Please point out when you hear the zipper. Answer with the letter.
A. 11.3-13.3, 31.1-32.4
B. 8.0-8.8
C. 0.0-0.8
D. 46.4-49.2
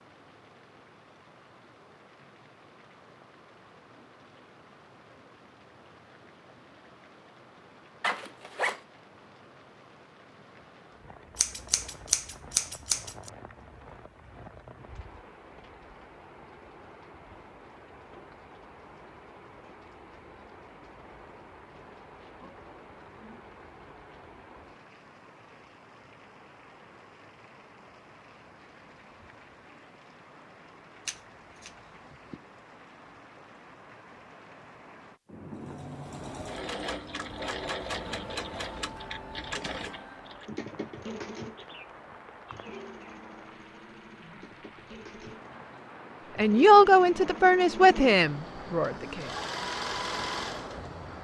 B.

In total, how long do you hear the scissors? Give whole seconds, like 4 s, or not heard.
3 s.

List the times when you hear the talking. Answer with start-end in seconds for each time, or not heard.
46.4-49.2.